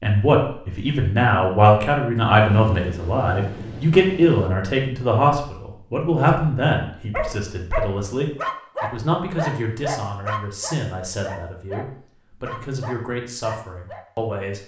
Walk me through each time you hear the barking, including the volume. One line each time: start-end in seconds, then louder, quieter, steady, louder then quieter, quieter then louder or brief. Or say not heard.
7.1-14.1 quieter.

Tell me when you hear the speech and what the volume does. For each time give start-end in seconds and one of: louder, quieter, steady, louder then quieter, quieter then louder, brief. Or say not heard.
0.0-14.6 quieter.